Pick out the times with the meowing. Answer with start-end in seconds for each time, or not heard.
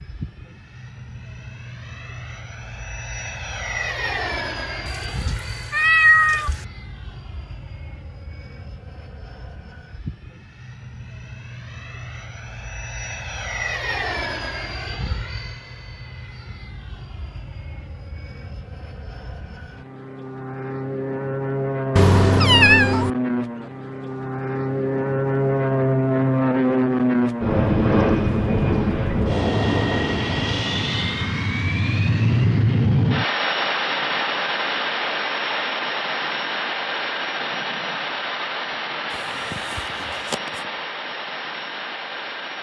4.8-6.7, 21.9-23.1, 39.1-40.6.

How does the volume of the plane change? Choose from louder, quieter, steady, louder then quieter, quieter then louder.
louder then quieter.